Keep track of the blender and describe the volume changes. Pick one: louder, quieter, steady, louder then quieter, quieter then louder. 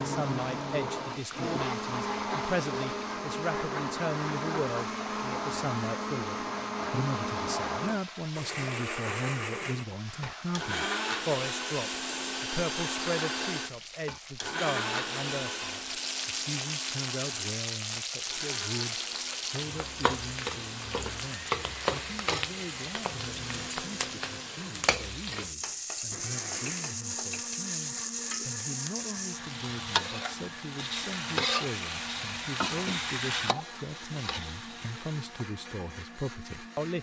quieter.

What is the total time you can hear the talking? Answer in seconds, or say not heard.
37 s.